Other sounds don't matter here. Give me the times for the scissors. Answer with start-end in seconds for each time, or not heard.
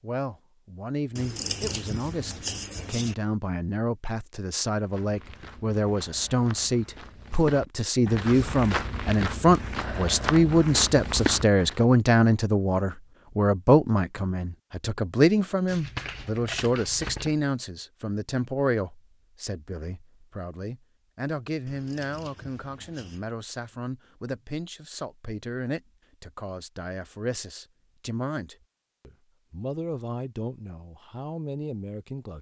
1.1-3.1, 15.7-17.4, 21.6-23.2.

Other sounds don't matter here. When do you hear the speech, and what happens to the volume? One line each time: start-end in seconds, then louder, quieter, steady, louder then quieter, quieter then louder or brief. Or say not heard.
0.0-32.3 louder then quieter.